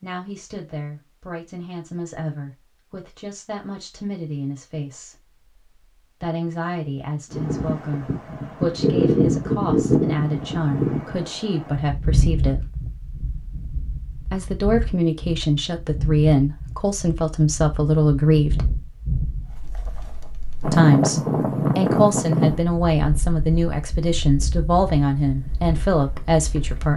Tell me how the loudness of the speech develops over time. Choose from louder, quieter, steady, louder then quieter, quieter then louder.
louder.